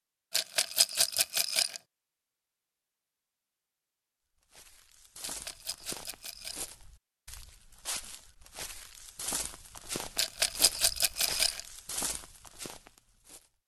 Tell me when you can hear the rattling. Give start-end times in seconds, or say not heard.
0.3-1.8, 5.2-6.7, 10.2-11.6.